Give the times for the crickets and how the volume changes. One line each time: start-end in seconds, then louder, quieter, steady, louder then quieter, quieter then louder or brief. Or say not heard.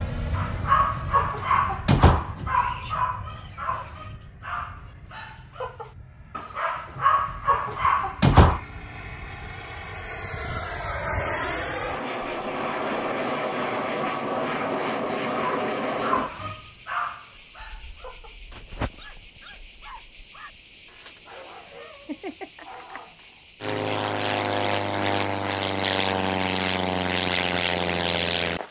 12.2-28.6 steady.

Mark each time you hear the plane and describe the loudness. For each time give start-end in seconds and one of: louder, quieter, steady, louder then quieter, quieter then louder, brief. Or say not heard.
0.0-16.3 quieter then louder
23.6-28.6 steady.